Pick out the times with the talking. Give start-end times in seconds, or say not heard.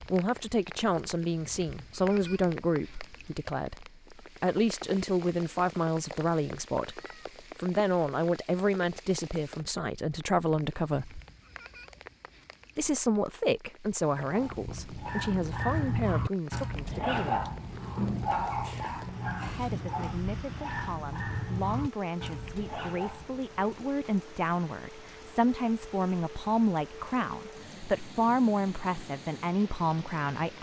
0.0-7.0, 7.6-11.2, 12.8-17.4, 19.4-30.5.